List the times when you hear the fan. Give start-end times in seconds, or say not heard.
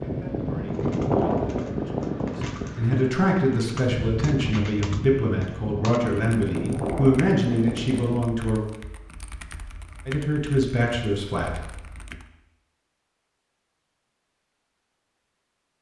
0.0-8.2.